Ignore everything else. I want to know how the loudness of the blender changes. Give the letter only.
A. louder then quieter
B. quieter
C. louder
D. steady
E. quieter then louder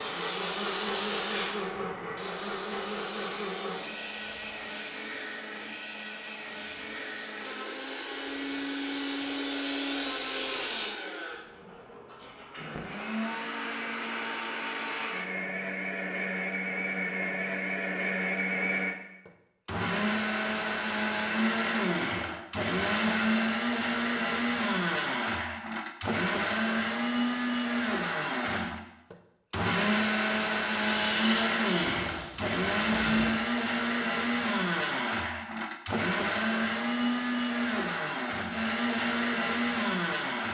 C.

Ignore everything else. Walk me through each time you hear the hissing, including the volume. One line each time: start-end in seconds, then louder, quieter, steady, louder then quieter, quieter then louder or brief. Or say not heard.
0.0-10.9 quieter then louder
30.8-33.4 brief.